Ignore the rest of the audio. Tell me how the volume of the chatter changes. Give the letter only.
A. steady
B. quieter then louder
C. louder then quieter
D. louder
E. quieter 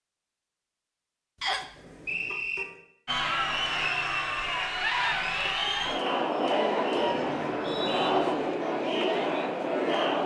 A.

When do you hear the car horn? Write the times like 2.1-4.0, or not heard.
1.8-2.8, 7.0-8.6.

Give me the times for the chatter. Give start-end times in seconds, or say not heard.
3.0-10.2.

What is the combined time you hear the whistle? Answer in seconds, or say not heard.
2 s.